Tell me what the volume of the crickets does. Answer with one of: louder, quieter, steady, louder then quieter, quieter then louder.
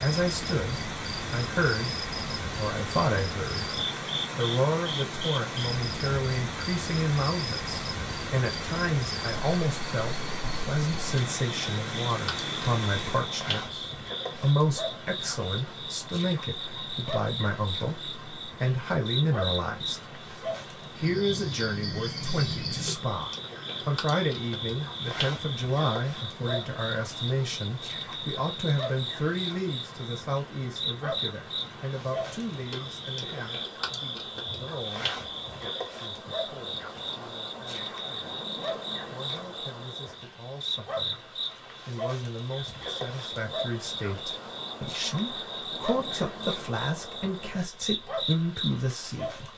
steady.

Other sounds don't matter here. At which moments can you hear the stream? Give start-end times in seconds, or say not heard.
0.0-49.5.